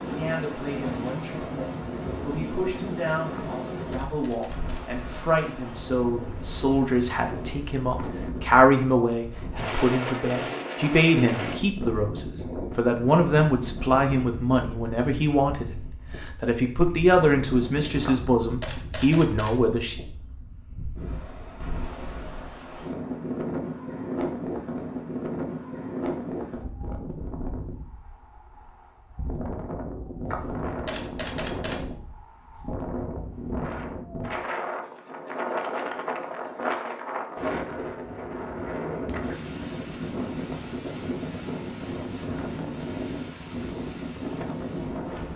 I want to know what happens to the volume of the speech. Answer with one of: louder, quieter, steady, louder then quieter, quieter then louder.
louder.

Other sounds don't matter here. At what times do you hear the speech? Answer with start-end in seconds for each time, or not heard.
0.0-19.9.